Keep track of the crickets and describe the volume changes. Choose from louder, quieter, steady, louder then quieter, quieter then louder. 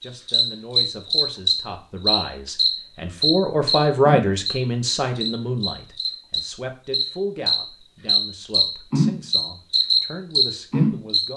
quieter then louder.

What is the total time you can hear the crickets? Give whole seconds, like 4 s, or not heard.
11 s.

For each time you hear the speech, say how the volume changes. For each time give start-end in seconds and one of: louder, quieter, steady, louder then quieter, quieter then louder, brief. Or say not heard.
0.0-11.3 louder then quieter.